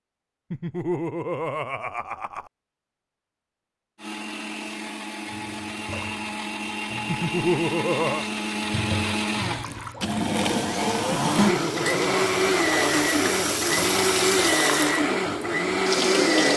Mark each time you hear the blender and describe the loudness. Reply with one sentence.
You can hear the blender from 4.0 to 16.5 s, getting louder.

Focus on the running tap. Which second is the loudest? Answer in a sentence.
The loudest moment of the running tap is at 16 seconds.